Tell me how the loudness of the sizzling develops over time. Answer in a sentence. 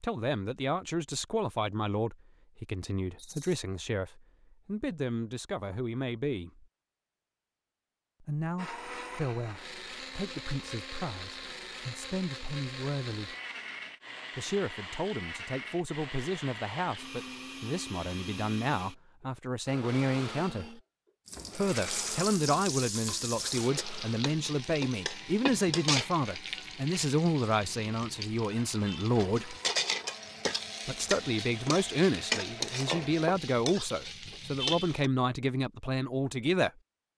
The loudness of the sizzling goes down, then up.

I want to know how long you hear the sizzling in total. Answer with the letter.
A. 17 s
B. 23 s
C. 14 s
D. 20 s
C.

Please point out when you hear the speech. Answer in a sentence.
You can hear the speech from 0.0 to 6.7 s, from 8.2 to 13.3 s, from 14.3 to 20.8 s, from 21.6 to 29.6 s and from 30.9 to 36.7 s.